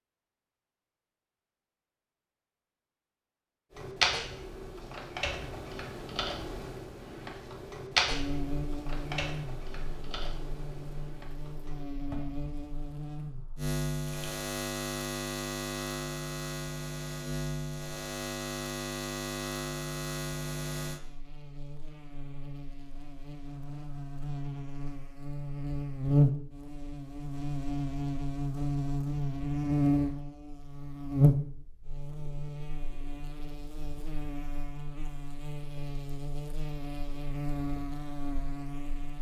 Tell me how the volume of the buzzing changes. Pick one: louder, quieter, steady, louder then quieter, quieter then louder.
louder then quieter.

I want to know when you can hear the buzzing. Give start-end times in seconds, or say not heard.
8.1-39.1.